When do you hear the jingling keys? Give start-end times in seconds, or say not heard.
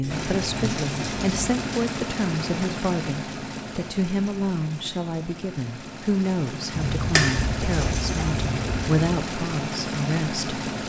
0.0-1.9, 6.7-8.9.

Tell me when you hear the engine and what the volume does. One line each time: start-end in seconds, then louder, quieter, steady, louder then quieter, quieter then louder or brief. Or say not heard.
0.0-10.8 quieter then louder.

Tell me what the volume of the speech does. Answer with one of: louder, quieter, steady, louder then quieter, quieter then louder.
steady.